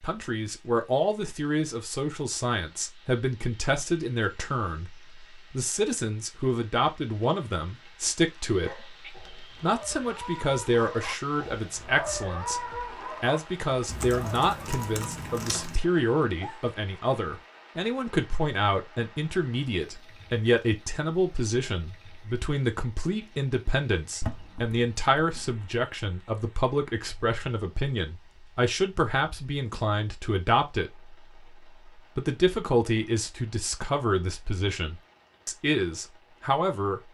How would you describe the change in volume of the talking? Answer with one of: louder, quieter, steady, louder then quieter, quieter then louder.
steady.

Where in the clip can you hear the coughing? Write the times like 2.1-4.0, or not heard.
not heard.